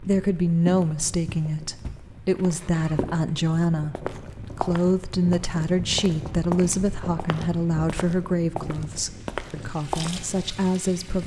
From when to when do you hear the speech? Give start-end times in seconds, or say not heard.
0.0-11.2.